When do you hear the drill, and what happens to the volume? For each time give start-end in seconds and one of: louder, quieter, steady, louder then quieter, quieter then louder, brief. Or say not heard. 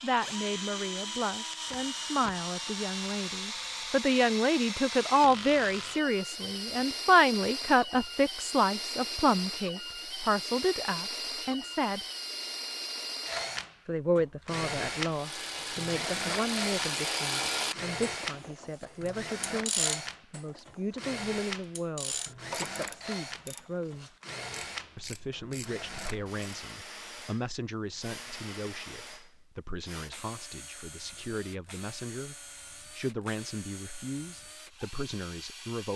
0.0-35.9 quieter.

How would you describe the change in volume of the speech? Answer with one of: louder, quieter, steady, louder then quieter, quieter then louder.
quieter.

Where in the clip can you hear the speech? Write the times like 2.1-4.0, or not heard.
0.0-12.0, 13.8-24.1, 24.9-35.9.